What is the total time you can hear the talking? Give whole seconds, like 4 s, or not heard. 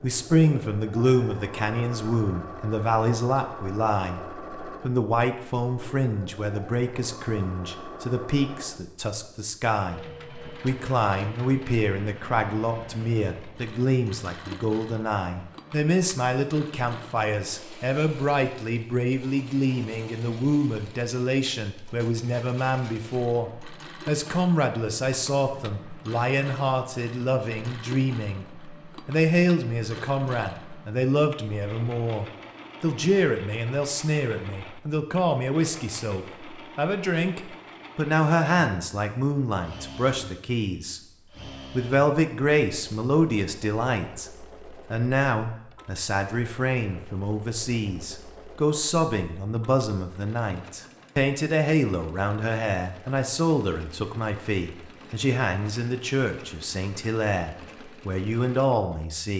58 s.